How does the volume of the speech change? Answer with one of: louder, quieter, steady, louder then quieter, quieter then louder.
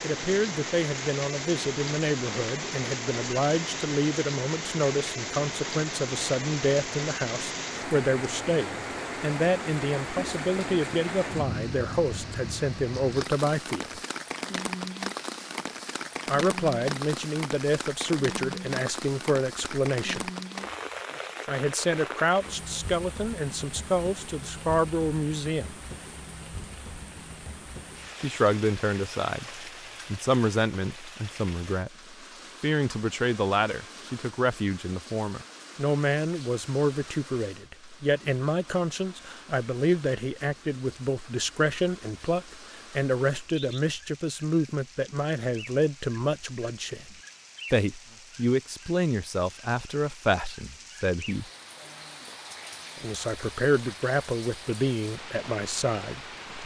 steady.